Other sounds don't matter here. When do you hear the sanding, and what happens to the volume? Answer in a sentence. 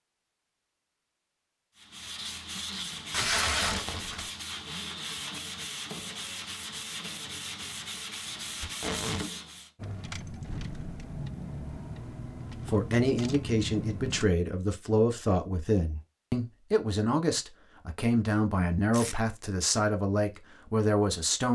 The sanding can be heard from 1.8 to 9.7 s, at a steady volume.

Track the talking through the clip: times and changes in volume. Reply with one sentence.
You can hear the talking from 12.7 to 21.4 s, at a steady volume.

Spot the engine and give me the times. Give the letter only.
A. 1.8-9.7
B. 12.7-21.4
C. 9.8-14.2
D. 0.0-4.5
C.